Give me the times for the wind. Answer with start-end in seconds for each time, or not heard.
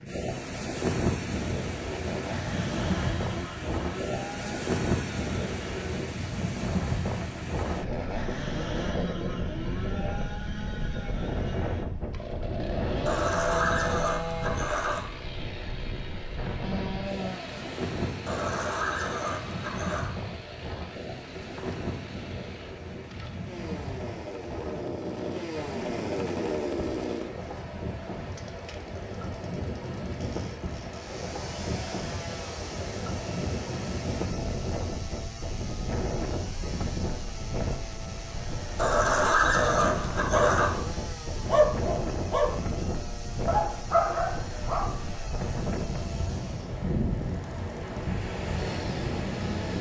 0.0-49.7.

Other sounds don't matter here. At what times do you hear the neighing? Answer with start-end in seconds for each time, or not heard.
13.1-15.0, 18.2-20.1, 38.8-40.7.